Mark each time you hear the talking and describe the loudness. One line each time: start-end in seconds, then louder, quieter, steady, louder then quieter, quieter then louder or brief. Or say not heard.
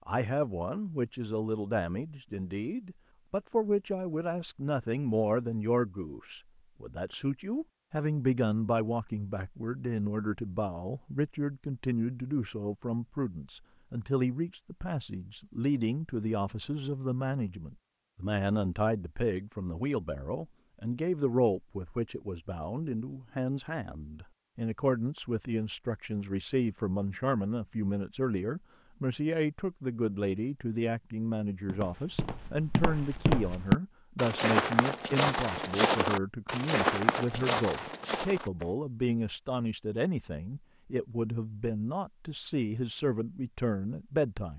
0.1-44.5 steady.